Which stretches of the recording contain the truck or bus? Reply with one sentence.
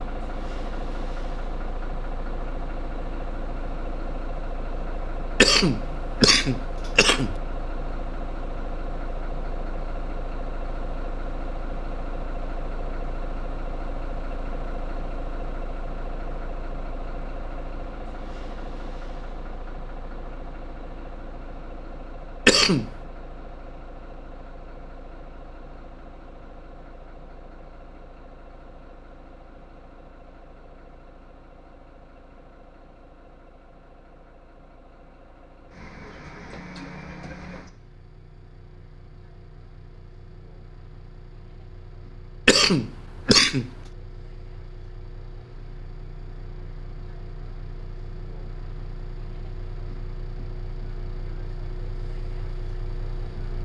The truck or bus can be heard from 0.0 to 53.5 s.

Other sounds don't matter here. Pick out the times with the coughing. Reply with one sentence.
You can hear the coughing from 5.4 to 7.3 s, from 22.4 to 22.9 s and from 42.5 to 43.7 s.